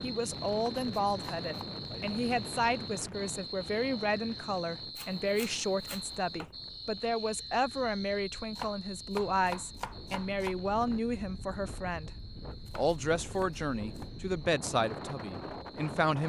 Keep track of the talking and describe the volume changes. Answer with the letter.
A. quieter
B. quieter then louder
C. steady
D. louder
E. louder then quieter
C.